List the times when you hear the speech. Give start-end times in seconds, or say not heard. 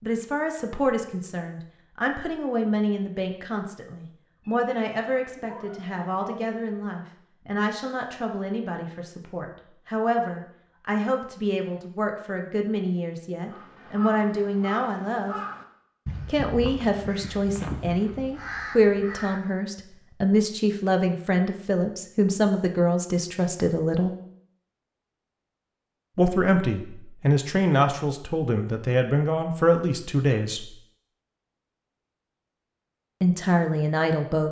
0.0-15.3, 16.2-24.1, 26.1-30.7, 33.2-34.4.